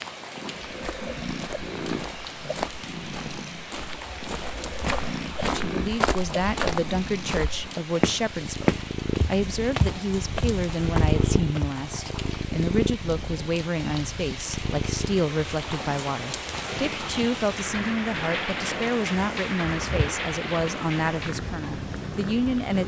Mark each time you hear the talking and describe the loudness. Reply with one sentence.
You can hear the talking from 5.6 to 22.8 s, at a steady volume.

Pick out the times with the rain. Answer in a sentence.
The rain can be heard from 0.0 to 22.8 s.